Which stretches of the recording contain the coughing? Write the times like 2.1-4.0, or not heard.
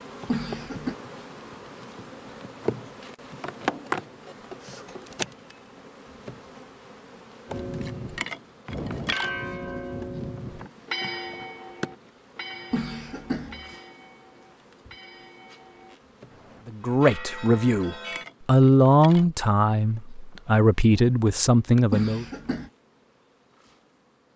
0.2-0.9, 12.7-13.8, 21.9-22.7.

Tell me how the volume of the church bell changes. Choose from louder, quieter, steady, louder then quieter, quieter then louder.
quieter then louder.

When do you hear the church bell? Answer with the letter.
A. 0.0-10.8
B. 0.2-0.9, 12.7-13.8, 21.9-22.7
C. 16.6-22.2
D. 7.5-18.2
D.